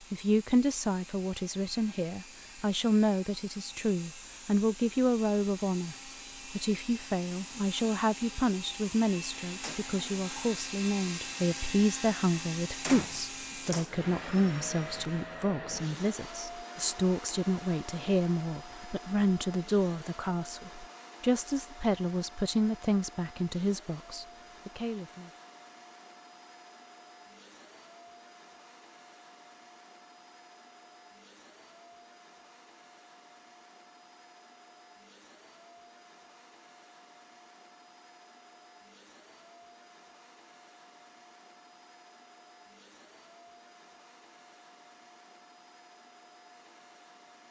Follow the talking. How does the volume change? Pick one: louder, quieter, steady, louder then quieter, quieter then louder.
steady.